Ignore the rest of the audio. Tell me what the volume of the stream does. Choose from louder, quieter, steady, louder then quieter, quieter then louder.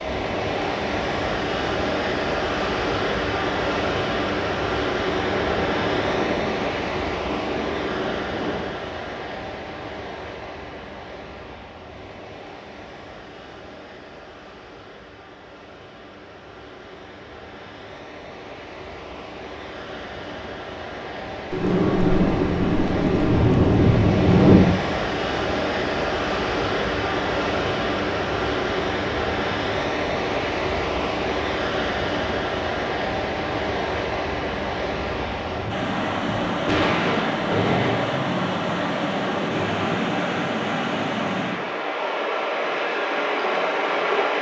quieter then louder.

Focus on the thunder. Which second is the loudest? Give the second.
24 s.